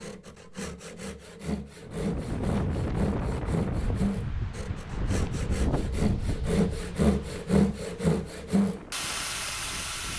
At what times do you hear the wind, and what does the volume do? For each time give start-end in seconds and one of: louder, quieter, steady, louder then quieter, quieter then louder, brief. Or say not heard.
1.8-10.1 quieter.